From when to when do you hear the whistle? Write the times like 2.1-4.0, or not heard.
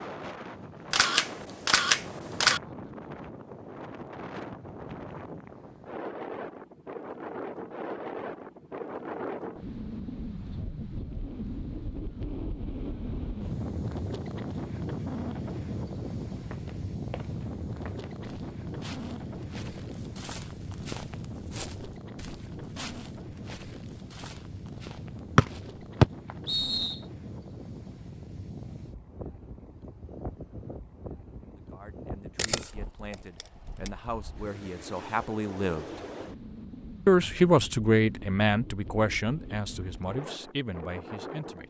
25.4-26.9.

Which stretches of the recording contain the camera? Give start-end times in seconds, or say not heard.
0.9-2.6, 32.4-33.9.